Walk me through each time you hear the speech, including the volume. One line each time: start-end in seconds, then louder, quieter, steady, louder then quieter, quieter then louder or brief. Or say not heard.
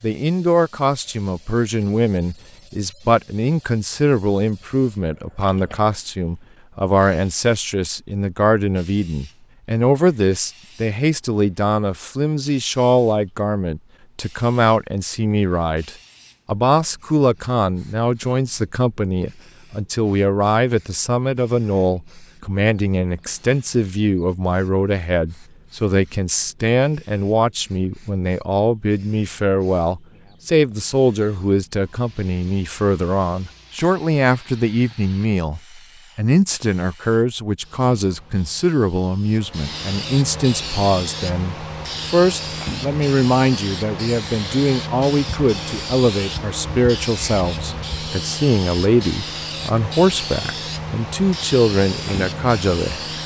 0.0-53.0 steady.